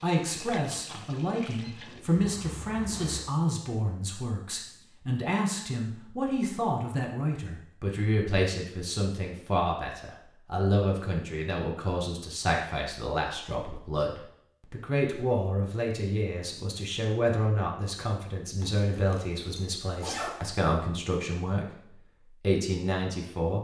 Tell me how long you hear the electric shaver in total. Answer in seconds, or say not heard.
not heard.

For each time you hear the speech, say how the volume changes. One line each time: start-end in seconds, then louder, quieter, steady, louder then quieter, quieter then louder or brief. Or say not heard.
0.0-23.5 steady.